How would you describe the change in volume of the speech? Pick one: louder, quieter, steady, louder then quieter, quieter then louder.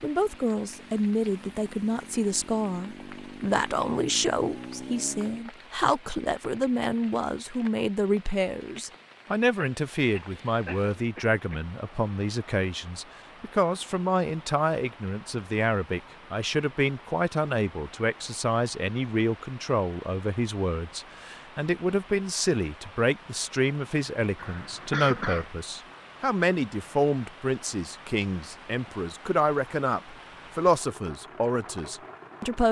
steady.